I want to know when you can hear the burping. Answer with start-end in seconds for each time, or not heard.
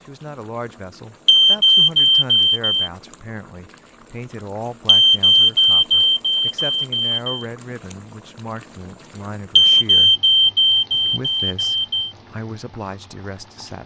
not heard.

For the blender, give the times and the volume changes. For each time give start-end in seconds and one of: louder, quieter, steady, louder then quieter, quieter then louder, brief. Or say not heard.
not heard.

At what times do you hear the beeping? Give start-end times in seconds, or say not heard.
1.2-2.9, 4.8-7.5, 9.6-12.1.